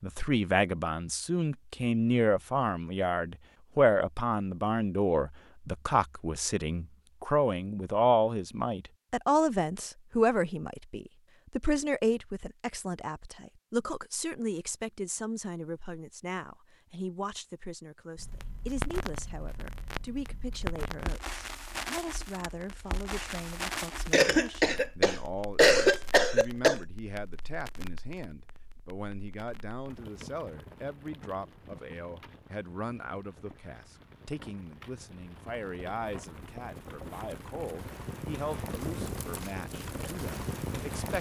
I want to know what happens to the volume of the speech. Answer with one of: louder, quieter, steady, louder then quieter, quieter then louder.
quieter.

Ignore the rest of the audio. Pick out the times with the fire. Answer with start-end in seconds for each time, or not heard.
18.1-41.1.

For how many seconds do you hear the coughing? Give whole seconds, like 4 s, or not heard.
3 s.